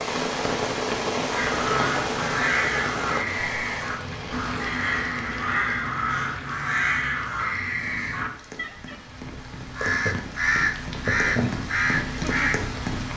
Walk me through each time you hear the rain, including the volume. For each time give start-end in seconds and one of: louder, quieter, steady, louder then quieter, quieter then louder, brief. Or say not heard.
0.0-13.1 quieter then louder.